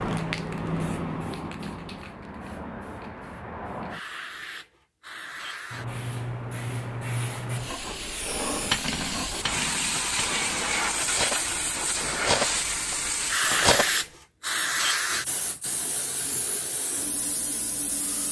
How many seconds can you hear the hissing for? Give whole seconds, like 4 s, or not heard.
18 s.